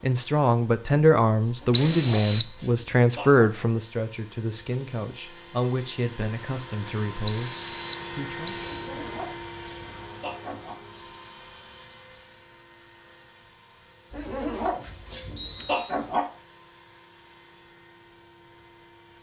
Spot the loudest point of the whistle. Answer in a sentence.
The loudest moment of the whistle is at 2 seconds.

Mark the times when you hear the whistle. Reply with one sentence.
The whistle can be heard from 1.7 to 2.5 s, from 7.2 to 8.9 s and from 15.3 to 15.9 s.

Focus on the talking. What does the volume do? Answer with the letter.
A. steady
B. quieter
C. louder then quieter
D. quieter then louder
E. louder
B.